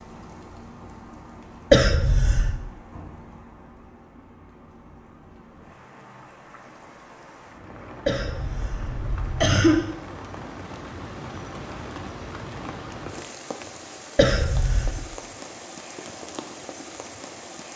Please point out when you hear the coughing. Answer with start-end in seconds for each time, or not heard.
1.7-2.5, 8.1-9.8, 14.2-15.0.